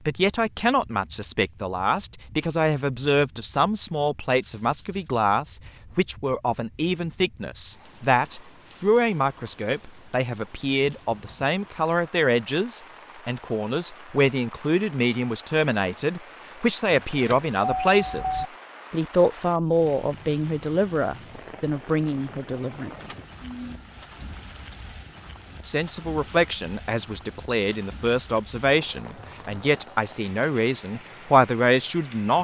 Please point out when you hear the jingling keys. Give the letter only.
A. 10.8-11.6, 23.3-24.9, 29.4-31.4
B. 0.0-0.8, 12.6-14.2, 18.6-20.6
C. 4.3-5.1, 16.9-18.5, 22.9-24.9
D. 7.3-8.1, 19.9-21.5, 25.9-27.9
C.